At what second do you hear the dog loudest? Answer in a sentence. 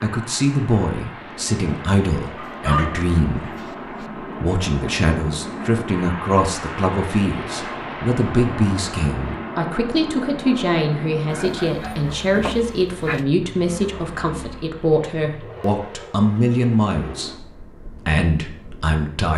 The loudest moment of the dog is at 3 seconds.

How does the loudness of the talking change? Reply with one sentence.
The loudness of the talking stays about the same.